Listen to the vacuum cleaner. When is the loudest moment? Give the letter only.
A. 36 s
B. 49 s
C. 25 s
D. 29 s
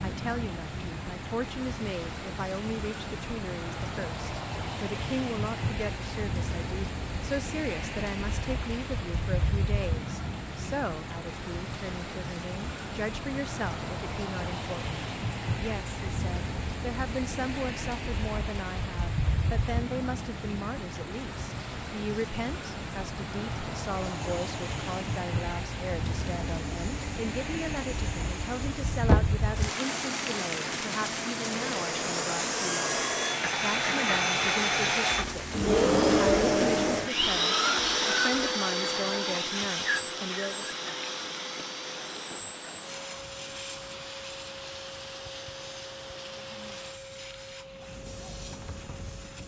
A.